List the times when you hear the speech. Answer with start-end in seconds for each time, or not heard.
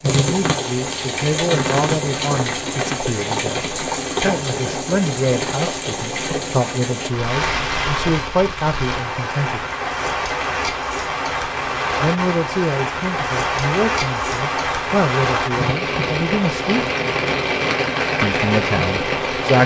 0.0-9.6, 12.0-16.8, 18.2-19.6.